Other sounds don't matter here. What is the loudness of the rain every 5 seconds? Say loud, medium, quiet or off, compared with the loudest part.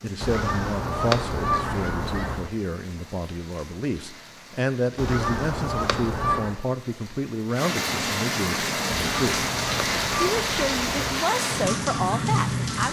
quiet, loud, loud.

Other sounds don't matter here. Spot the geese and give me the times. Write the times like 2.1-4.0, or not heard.
0.2-2.5, 5.0-6.5, 8.9-11.2.